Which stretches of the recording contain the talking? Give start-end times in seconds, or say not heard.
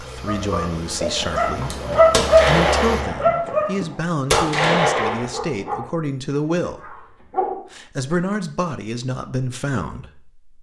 0.0-10.4.